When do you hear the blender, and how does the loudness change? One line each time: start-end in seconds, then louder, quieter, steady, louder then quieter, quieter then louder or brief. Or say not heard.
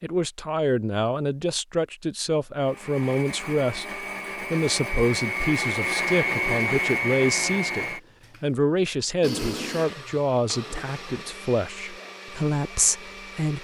2.5-13.5 louder then quieter.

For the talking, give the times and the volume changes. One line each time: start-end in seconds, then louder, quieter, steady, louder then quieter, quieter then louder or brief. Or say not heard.
0.0-13.5 steady.